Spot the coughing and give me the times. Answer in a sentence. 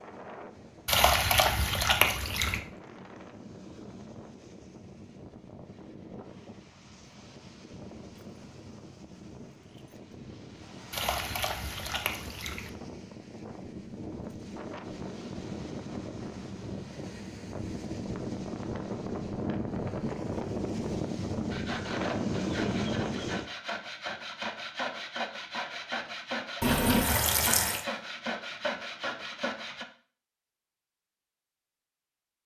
You can't hear the coughing here.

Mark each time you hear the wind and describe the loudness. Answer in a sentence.
You can hear the wind from 0.0 to 23.5 s, getting louder.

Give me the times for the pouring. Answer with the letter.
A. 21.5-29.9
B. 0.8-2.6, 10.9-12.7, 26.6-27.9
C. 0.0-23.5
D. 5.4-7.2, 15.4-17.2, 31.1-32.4
B.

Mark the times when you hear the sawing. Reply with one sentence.
The sawing can be heard from 21.5 to 29.9 s.